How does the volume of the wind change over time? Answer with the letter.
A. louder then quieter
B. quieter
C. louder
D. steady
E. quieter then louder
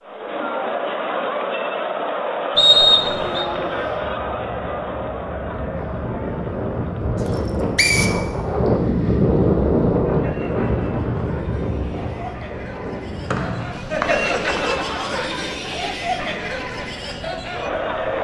A.